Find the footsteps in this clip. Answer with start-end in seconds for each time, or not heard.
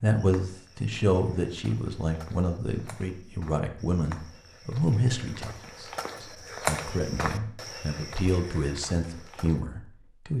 0.1-9.7.